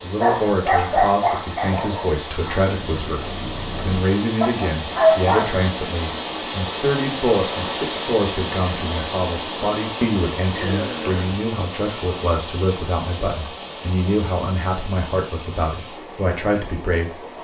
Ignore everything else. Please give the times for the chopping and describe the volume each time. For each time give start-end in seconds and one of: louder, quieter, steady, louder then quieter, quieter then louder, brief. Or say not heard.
not heard.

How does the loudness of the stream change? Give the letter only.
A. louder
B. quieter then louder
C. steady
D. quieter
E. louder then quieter
E.